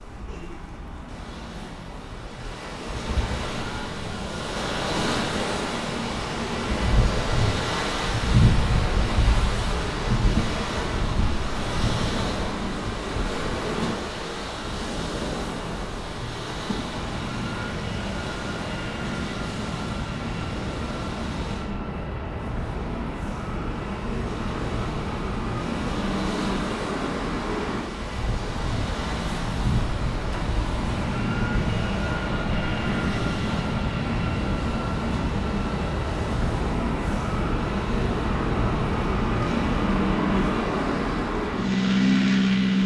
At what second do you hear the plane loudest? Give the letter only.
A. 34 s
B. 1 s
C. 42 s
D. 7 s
C.